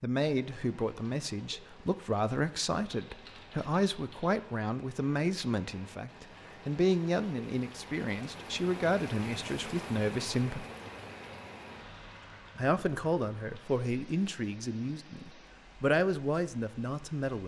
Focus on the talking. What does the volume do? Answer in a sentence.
The volume of the talking stays about the same.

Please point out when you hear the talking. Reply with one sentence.
The talking can be heard from 0.0 to 10.7 s and from 12.6 to 17.4 s.